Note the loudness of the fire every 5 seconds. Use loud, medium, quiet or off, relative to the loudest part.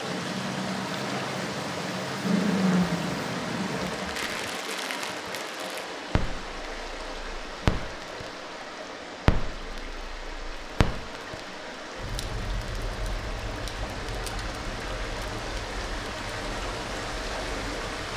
loud, loud, medium, quiet.